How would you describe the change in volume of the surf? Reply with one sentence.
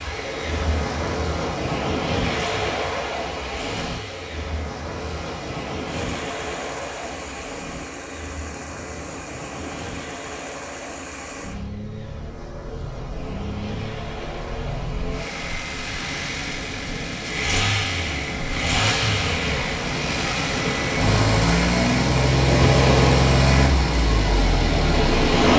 The volume of the surf goes down, then up.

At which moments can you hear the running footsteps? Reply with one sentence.
You can't hear the running footsteps here.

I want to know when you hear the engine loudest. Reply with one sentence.
The volume of the engine peaks at 23 seconds.